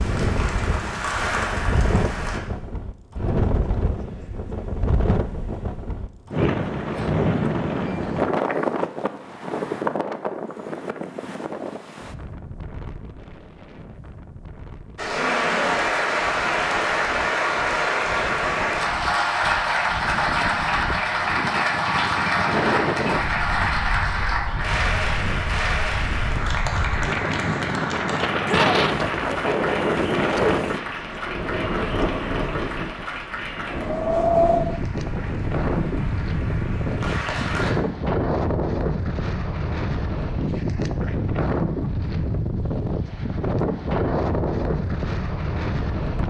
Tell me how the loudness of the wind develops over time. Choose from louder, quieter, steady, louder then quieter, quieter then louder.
quieter then louder.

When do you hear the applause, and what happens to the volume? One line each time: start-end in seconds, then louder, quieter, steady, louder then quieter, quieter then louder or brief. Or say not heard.
0.0-2.4 brief
14.9-37.8 quieter.